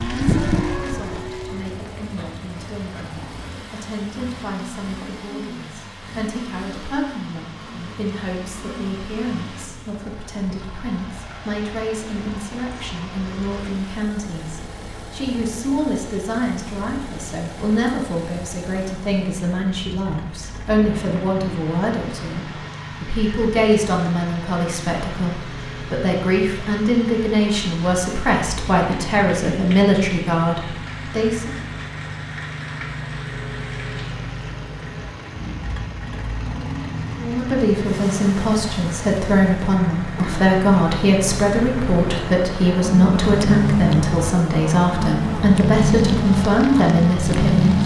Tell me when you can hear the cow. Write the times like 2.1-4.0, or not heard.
0.0-2.4, 42.8-47.8.